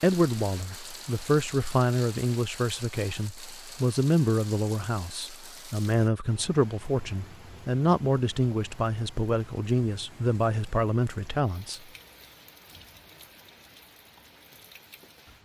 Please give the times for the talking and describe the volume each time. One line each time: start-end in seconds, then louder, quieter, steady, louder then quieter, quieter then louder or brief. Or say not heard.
0.0-11.8 steady.